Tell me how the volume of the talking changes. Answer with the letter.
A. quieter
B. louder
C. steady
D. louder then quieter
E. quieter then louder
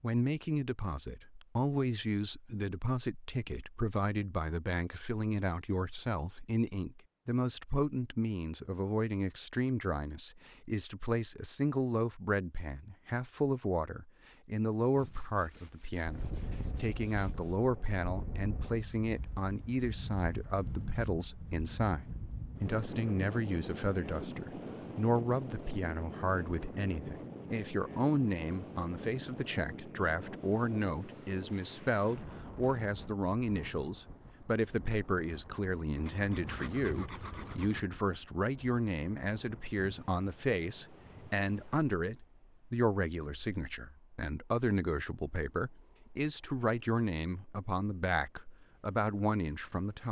C.